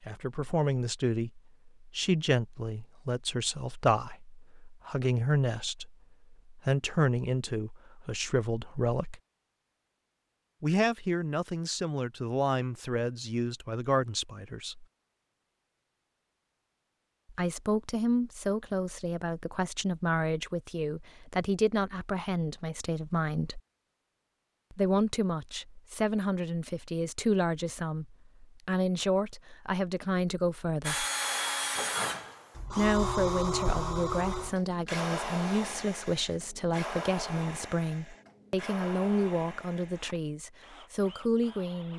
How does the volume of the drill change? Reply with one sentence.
The loudness of the drill goes down.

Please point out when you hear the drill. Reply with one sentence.
You can hear the drill from 30.9 to 41.9 s.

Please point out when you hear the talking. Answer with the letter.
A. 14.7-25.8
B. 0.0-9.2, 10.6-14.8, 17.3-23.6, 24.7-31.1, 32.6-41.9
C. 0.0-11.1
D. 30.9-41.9
B.